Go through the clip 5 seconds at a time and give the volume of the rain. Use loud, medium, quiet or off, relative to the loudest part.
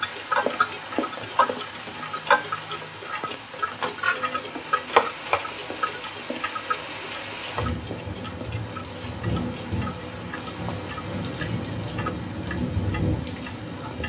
medium, loud, loud.